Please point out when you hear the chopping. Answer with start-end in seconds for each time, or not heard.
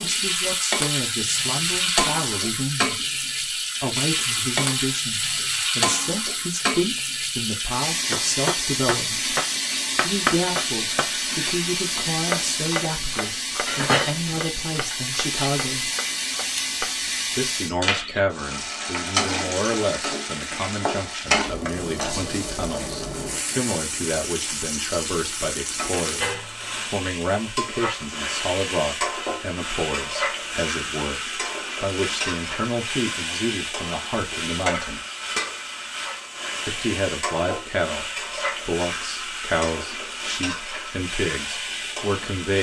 8.1-17.4.